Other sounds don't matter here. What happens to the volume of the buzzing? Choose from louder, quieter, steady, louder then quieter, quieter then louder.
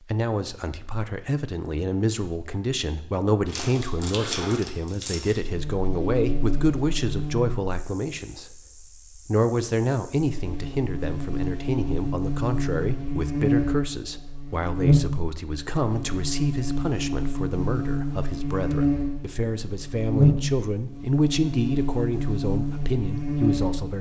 louder.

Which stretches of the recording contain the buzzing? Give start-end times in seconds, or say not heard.
5.4-23.9.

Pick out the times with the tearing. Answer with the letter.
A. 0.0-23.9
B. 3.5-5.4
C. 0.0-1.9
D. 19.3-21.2
B.